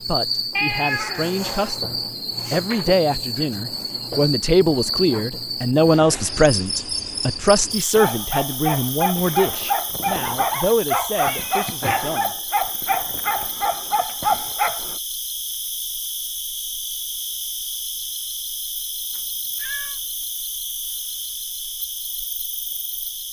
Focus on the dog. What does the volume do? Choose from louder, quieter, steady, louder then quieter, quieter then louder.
steady.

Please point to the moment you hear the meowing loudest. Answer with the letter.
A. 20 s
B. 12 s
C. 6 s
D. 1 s
D.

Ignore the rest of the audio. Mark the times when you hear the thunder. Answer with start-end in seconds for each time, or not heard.
not heard.